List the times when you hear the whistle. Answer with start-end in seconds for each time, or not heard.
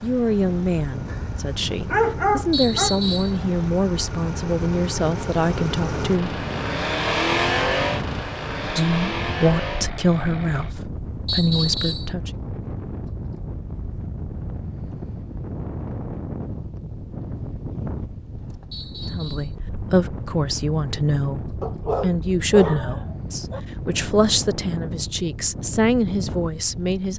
2.5-3.4, 11.2-12.1, 18.7-19.6.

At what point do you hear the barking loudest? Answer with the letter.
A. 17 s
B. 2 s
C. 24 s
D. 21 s
B.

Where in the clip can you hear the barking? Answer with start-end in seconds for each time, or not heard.
1.1-3.0, 21.6-23.6.